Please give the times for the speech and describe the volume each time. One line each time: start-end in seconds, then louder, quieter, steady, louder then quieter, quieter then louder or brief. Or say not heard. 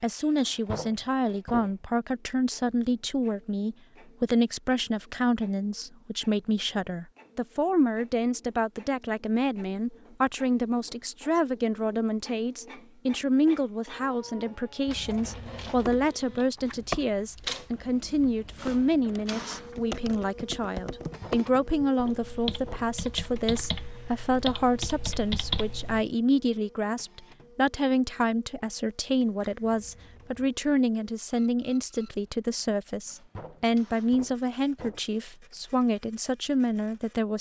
0.0-37.3 steady.